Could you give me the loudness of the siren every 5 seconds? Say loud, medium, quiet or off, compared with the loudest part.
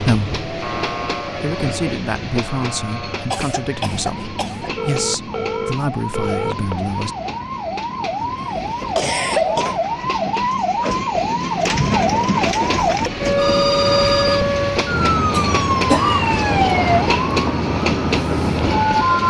quiet, medium, loud, loud.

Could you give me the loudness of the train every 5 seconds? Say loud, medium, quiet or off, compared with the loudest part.
medium, medium, loud, loud.